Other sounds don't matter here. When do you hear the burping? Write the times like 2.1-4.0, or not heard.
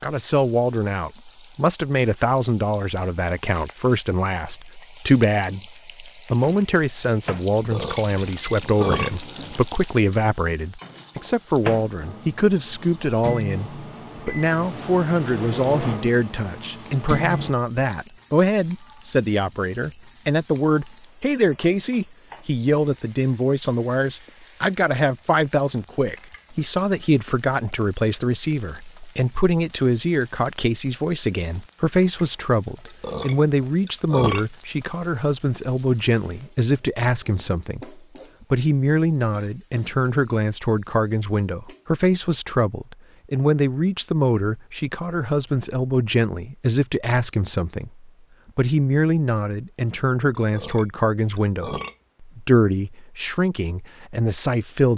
7.5-9.2, 32.7-34.5, 50.4-52.0.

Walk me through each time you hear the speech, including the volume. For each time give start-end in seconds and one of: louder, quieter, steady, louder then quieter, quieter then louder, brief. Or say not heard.
0.0-54.9 steady.